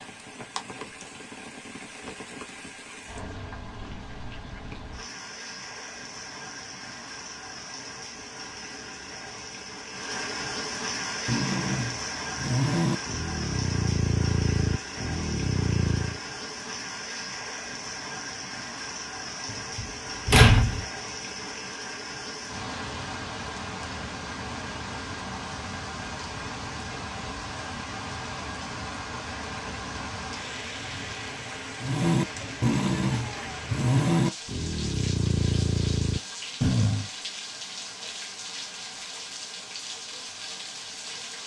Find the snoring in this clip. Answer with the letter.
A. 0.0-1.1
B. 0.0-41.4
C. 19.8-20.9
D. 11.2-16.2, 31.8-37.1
D.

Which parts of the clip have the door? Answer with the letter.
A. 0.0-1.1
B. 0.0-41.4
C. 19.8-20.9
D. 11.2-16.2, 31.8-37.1
C.